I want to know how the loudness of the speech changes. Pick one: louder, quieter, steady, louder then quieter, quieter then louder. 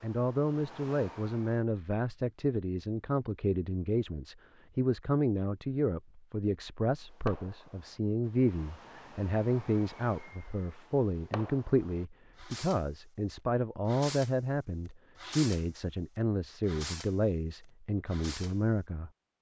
steady.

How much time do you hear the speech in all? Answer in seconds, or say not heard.
19 s.